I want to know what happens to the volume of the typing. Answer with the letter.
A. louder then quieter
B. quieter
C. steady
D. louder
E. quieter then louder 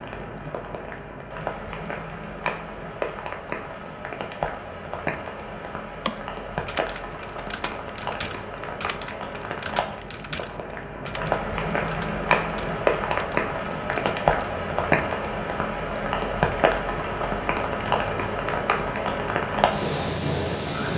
B.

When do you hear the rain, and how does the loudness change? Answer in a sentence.
The rain can be heard from 0.0 to 20.9 s, getting louder.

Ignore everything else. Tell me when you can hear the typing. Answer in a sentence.
The typing can be heard from 6.0 to 14.7 s.